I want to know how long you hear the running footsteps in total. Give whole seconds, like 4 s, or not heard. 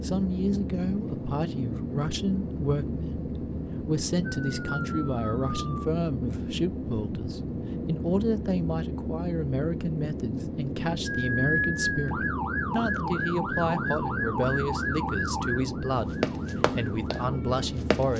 2 s.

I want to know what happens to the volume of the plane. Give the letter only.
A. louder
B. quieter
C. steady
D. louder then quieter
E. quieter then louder
C.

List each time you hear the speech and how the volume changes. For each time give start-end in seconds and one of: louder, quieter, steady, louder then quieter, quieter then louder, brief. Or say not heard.
0.0-18.1 steady.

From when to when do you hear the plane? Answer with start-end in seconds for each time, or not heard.
0.0-18.1.